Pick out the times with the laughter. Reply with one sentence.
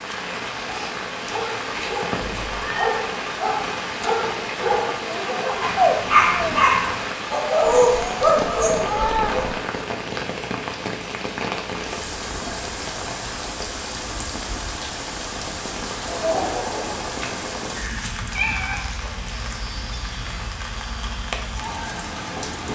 You can hear the laughter from 5.0 to 6.7 s and from 16.1 to 17.0 s.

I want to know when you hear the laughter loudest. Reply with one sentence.
The volume of the laughter peaks at 6 seconds.